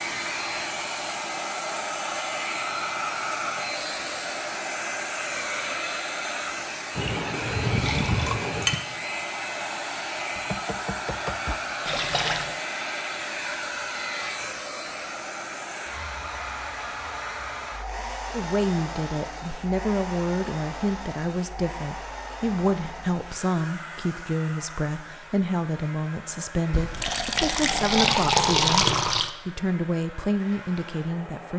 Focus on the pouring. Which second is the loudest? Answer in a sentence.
The loudest moment of the pouring is at 29 seconds.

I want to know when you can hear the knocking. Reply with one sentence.
You can hear the knocking from 10.3 to 11.6 s.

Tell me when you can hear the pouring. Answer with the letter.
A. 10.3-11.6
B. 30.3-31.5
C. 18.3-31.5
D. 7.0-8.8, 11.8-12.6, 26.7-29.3
D.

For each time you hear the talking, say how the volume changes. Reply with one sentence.
You can hear the talking from 18.3 to 31.5 s, at a steady volume.